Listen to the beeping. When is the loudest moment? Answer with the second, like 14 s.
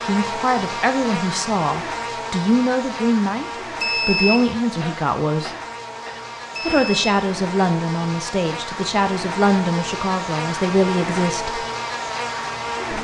4 s.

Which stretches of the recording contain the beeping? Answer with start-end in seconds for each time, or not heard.
3.8-4.5, 6.5-7.1.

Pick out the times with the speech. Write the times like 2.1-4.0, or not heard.
0.0-5.5, 6.7-11.7.